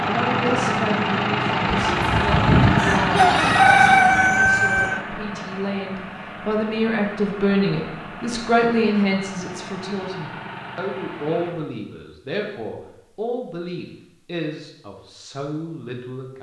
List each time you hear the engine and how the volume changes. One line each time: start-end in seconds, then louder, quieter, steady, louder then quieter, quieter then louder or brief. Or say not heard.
0.0-11.6 quieter.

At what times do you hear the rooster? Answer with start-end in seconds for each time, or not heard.
1.9-5.0.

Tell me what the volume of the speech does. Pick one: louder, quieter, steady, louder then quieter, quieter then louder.
louder then quieter.